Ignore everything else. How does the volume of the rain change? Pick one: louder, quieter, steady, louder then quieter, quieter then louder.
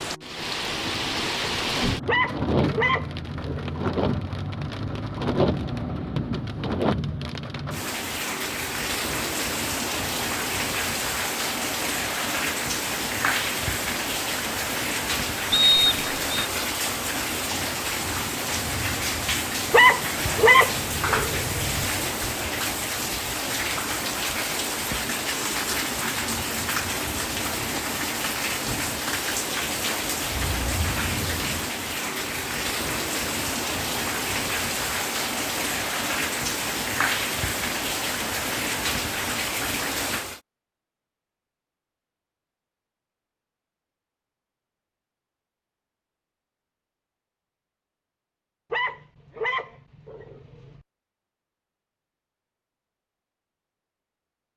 steady.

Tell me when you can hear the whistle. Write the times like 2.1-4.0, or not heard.
15.5-16.4.